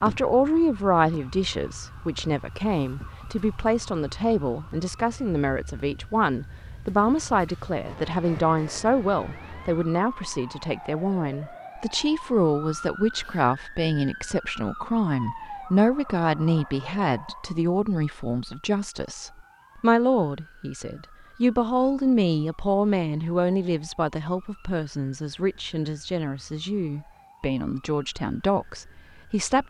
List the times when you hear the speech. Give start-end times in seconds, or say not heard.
0.0-29.6.